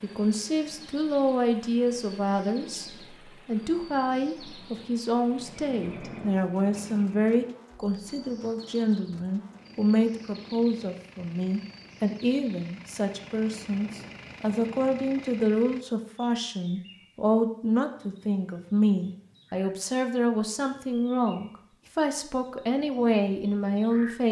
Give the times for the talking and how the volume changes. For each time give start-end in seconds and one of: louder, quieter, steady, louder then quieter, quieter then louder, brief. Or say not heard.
0.0-24.2 steady.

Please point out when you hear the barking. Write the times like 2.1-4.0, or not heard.
not heard.